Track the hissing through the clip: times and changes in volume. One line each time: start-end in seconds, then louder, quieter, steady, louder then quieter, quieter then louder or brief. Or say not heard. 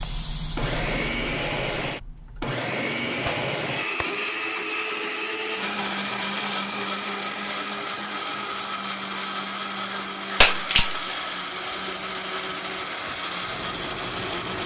0.0-2.5 brief
5.5-14.6 steady.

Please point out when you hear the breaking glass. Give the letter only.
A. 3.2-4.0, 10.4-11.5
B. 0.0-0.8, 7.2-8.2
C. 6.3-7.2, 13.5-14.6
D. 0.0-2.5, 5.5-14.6
A.